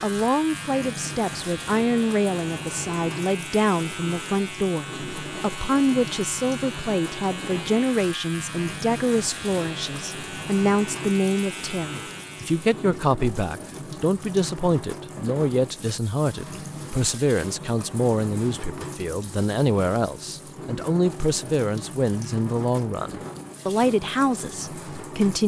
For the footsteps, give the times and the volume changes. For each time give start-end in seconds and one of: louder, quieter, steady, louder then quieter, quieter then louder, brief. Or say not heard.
not heard.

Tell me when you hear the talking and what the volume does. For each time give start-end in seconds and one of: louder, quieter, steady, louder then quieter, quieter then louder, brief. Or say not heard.
0.0-25.4 steady.